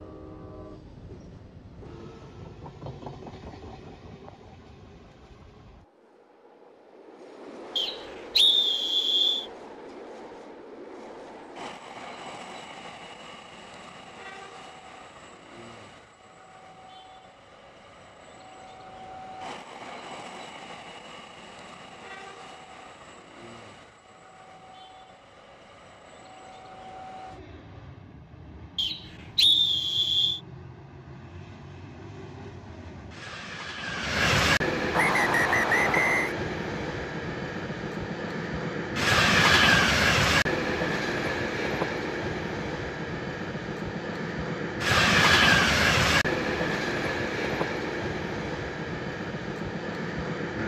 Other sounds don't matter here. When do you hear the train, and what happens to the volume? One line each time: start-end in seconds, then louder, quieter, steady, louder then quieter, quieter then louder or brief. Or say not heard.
0.0-50.6 louder.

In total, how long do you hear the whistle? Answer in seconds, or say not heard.
5 s.